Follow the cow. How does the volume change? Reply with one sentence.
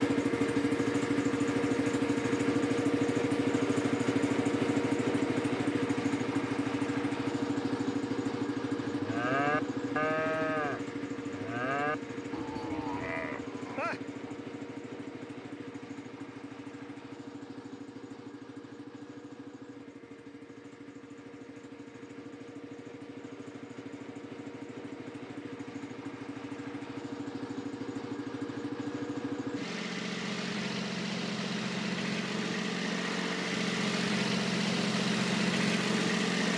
The loudness of the cow goes down.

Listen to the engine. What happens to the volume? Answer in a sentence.
The volume of the engine goes down, then up.